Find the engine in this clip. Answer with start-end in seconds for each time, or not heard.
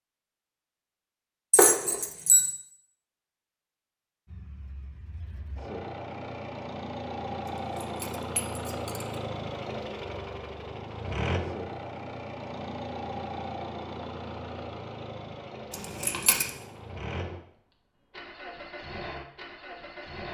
4.2-20.2.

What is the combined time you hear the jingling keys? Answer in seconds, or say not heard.
3 s.